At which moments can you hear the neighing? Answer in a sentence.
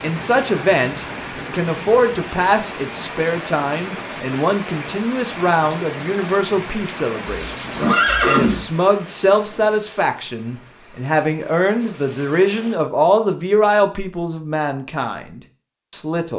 The neighing can be heard from 7.2 to 8.7 s.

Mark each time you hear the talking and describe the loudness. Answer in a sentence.
You can hear the talking from 0.0 to 16.3 s, at a steady volume.